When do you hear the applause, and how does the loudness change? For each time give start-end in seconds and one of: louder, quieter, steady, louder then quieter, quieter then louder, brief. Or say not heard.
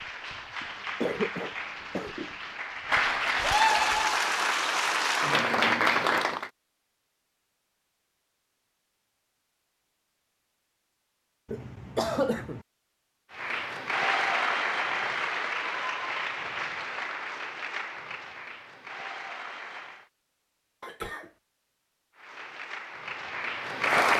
0.0-6.5 louder
13.3-20.1 quieter
22.1-24.1 brief.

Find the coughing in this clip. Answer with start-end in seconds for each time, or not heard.
0.6-2.4, 11.4-12.7, 20.8-21.3.